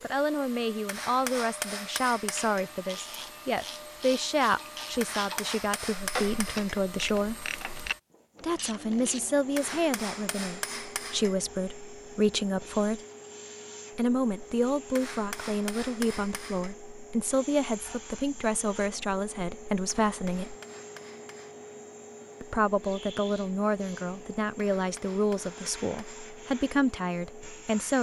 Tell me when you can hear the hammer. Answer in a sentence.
You can hear the hammer from 0.8 to 2.7 s, from 5.0 to 6.8 s, from 9.6 to 11.3 s, from 14.9 to 16.8 s, from 20.1 to 21.6 s and from 24.6 to 26.3 s.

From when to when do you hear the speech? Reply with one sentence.
The speech can be heard from 0.0 to 7.3 s, from 8.4 to 13.0 s, from 13.9 to 20.6 s and from 22.4 to 27.9 s.